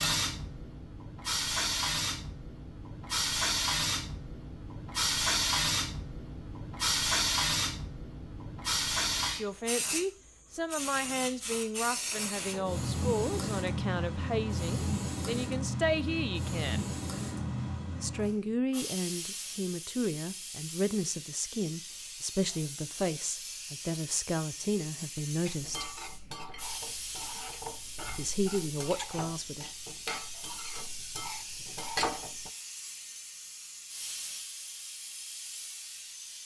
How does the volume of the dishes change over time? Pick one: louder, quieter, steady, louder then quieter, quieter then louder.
louder.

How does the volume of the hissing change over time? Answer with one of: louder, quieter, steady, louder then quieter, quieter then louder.
quieter.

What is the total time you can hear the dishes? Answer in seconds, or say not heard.
7 s.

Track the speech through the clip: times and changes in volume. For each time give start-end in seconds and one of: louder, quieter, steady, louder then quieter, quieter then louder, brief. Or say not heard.
9.3-16.9 steady
18.0-25.9 steady
28.1-29.6 brief.